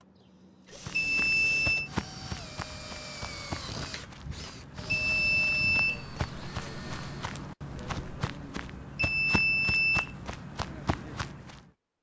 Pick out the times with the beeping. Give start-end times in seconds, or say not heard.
0.9-1.9, 4.9-6.5, 8.9-10.3.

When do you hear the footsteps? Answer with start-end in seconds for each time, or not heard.
0.8-11.7.